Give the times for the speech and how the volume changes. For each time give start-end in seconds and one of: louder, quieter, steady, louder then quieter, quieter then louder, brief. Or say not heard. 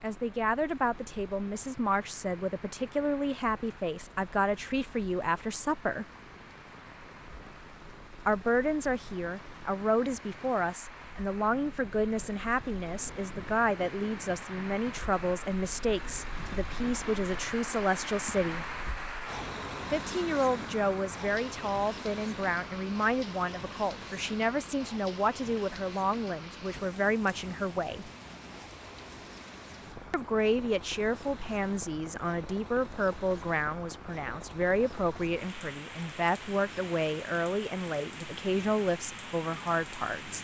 0.0-6.0 steady
8.2-18.8 steady
19.9-28.1 steady
30.1-40.4 steady.